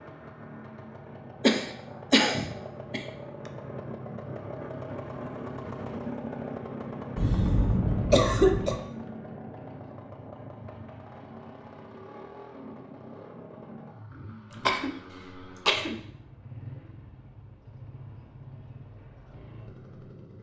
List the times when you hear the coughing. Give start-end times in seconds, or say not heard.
1.4-3.0, 7.2-8.8, 14.5-15.9.